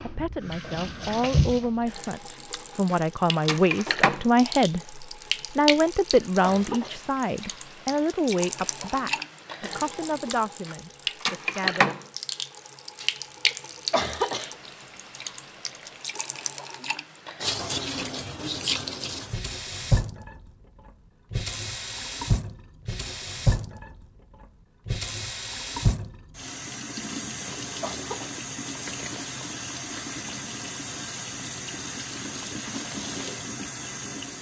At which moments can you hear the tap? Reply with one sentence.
The tap can be heard from 0.0 to 34.3 s.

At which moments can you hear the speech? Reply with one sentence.
The speech can be heard from 0.0 to 11.9 s.